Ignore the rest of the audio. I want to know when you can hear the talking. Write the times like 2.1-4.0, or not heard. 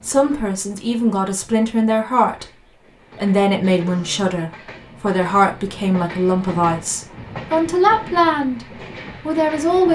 0.0-2.5, 3.1-9.9.